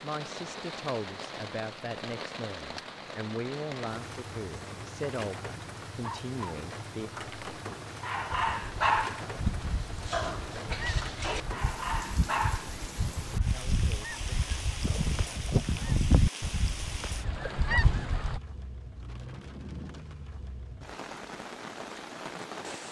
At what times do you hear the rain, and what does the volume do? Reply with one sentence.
The rain can be heard from 0.0 to 22.8 s, at a steady volume.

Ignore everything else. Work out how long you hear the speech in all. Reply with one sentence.
You can hear the speech for 8 seconds altogether.